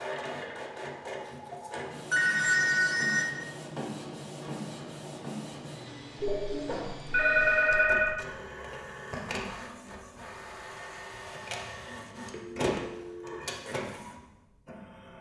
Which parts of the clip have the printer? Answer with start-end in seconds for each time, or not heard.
0.0-15.1.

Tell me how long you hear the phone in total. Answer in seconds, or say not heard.
4 s.